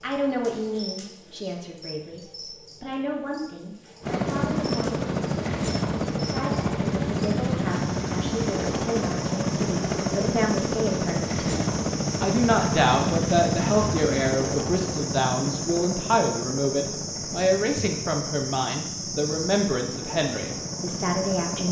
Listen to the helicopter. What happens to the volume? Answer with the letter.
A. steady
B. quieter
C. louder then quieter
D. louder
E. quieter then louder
B.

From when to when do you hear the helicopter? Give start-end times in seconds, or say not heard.
4.0-21.6.